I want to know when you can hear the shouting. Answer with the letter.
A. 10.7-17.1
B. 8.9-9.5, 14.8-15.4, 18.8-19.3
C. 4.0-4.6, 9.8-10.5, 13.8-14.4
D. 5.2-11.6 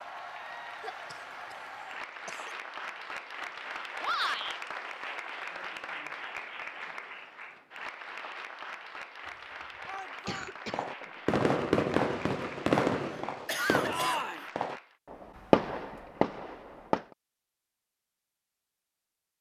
C.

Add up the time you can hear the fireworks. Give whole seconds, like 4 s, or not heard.
6 s.